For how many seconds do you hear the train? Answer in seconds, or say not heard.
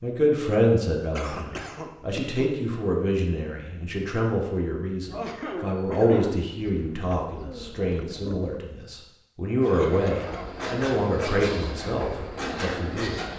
4 s.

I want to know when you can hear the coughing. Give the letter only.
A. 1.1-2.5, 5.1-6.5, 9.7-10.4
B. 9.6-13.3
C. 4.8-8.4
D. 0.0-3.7
A.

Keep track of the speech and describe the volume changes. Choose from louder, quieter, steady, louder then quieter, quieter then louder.
steady.